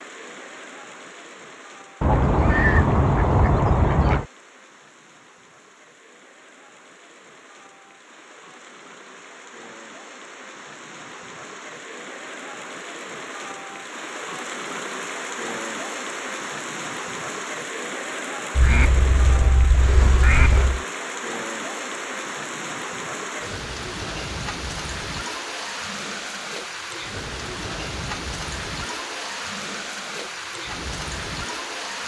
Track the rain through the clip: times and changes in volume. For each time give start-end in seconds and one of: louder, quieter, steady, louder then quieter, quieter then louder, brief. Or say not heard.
0.0-32.0 louder.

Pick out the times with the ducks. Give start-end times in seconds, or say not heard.
2.0-4.2, 18.6-20.8.